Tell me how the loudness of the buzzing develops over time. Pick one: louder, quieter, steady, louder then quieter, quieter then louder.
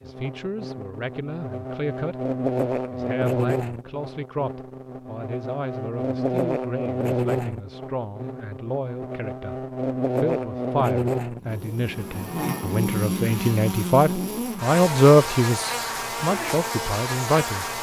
steady.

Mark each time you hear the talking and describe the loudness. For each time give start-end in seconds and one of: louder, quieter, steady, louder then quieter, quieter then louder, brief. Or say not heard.
0.0-2.1 brief
2.9-17.6 louder.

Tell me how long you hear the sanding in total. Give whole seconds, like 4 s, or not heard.
not heard.